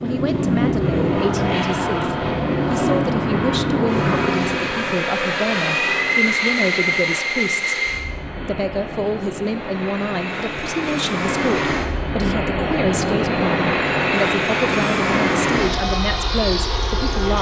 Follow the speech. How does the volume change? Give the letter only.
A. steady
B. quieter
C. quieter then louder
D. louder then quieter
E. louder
A.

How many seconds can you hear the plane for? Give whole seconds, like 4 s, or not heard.
17 s.